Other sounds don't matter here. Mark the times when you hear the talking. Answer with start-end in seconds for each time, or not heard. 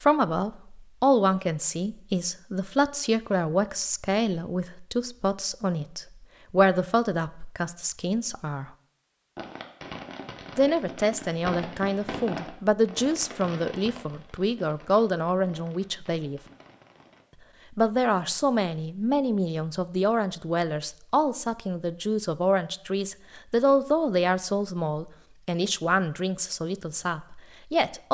0.0-8.7, 10.6-16.4, 17.8-28.0.